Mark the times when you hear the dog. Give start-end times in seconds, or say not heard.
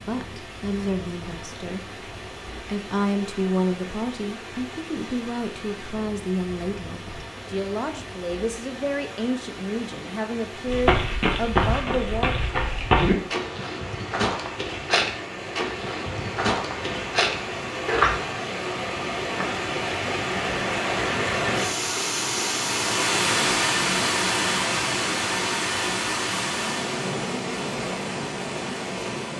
not heard.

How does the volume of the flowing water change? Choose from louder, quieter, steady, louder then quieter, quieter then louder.
louder.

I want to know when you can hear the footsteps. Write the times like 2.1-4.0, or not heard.
10.7-18.2.